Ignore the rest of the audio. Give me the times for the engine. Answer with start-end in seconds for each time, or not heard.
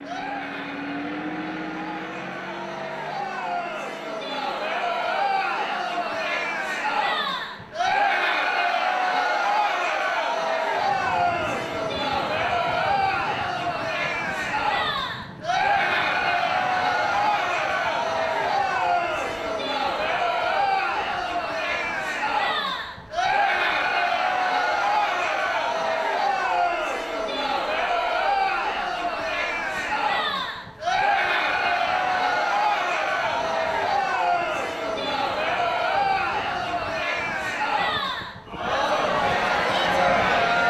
0.0-8.3.